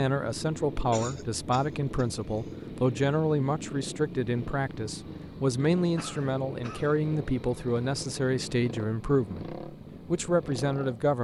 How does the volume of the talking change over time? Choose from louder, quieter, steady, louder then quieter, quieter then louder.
steady.